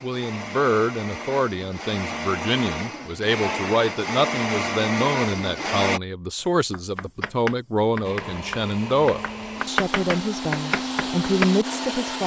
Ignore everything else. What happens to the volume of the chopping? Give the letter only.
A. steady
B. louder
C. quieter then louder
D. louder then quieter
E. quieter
C.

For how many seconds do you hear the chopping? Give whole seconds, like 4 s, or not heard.
5 s.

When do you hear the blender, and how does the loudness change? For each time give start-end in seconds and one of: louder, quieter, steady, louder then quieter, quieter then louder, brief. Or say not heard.
0.0-6.0 louder
8.0-12.2 louder.